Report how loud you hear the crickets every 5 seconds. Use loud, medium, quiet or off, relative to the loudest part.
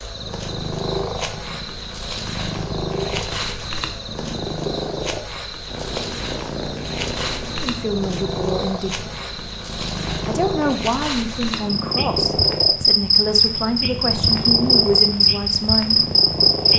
quiet, quiet, loud, loud.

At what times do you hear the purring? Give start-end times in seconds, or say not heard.
0.1-16.7.